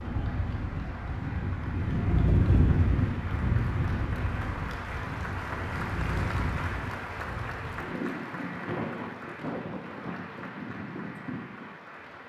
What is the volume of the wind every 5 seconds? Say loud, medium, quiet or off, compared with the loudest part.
loud, medium, medium.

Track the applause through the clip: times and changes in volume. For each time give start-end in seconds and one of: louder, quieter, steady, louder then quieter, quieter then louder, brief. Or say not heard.
0.0-12.2 louder then quieter.